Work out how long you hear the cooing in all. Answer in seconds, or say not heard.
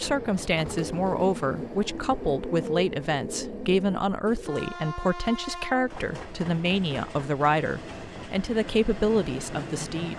5 s.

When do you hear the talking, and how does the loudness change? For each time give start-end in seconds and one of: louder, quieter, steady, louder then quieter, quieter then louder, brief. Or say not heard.
0.0-10.1 steady.